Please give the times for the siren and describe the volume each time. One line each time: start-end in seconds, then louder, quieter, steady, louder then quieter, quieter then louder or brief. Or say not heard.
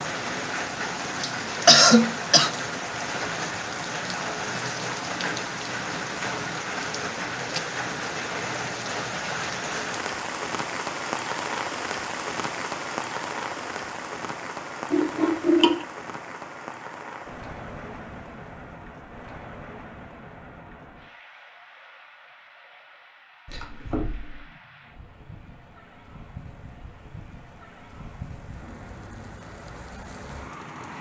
not heard.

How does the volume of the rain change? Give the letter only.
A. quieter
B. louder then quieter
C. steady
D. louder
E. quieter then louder
A.